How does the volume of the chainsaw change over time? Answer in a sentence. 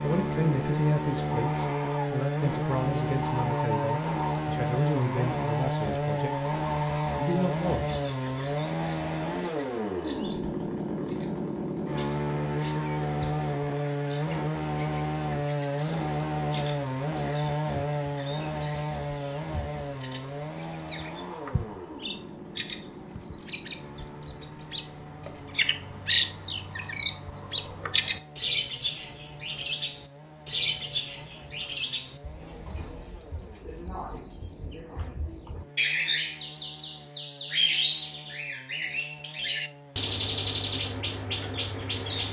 The volume of the chainsaw goes down.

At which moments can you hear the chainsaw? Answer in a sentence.
You can hear the chainsaw from 0.0 to 42.2 s.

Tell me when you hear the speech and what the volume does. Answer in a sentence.
You can hear the speech from 0.0 to 6.5 s, at a steady volume; and briefly from 7.2 to 7.8 s.